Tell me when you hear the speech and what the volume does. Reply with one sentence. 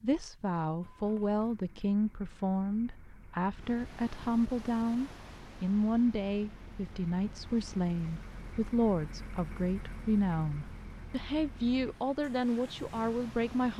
You can hear the speech from 0.0 to 13.7 s, at a steady volume.